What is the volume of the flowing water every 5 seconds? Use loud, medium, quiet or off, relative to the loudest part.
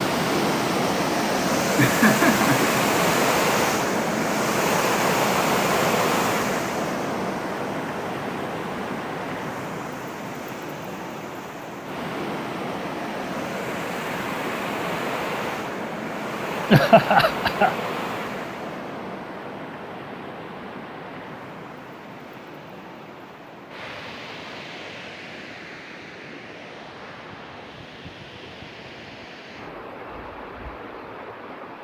loud, loud, medium, medium, quiet, quiet, quiet.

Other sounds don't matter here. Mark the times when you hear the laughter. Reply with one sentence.
You can hear the laughter from 1.8 to 2.8 s and from 16.7 to 17.8 s.